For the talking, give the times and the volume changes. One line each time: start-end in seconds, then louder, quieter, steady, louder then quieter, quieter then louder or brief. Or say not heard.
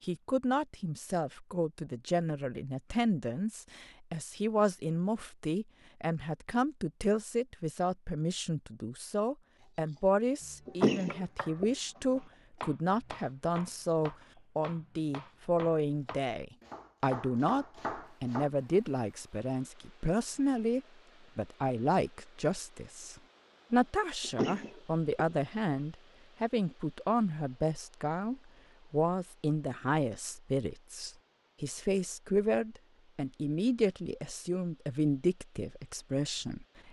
0.0-36.8 steady.